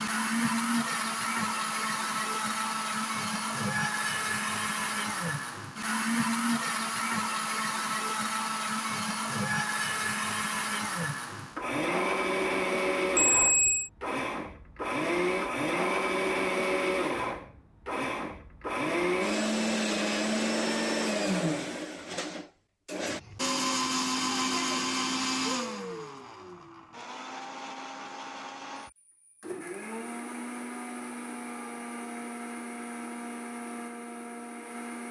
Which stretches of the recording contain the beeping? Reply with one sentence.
You can hear the beeping from 13.2 to 13.9 s.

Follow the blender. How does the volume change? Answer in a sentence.
The volume of the blender goes down.